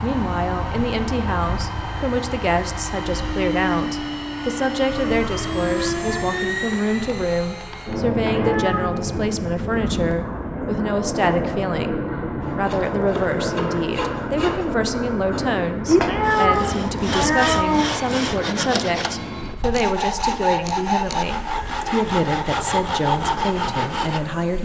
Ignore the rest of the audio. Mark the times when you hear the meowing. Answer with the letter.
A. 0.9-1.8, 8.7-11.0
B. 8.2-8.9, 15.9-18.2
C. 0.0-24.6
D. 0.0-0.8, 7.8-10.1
B.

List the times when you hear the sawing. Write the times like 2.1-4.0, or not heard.
12.4-24.2.